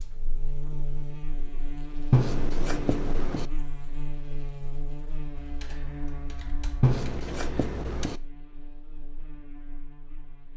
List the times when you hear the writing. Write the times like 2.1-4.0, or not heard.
2.1-3.5, 6.8-8.2.